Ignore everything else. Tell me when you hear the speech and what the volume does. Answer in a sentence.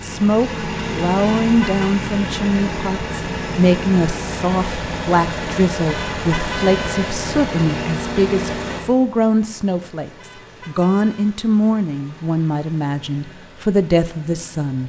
You can hear the speech from 0.0 to 14.8 s, at a steady volume.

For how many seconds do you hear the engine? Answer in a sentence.
You can hear the engine for 15 seconds altogether.